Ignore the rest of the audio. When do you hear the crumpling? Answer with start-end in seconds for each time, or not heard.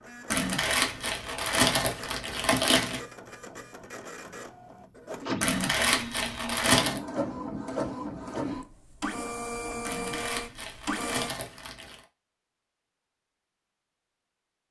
0.3-3.0, 5.4-7.0, 9.8-12.0.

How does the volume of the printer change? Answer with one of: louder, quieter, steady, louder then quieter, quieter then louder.
louder.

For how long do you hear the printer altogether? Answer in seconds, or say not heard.
11 s.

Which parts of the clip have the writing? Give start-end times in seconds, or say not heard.
not heard.